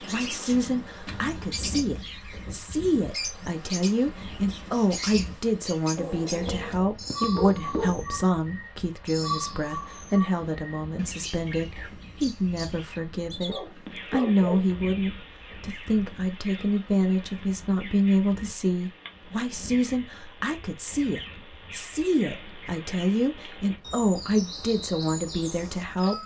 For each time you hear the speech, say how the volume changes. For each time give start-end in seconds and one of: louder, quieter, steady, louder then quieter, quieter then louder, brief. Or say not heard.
0.0-26.1 steady.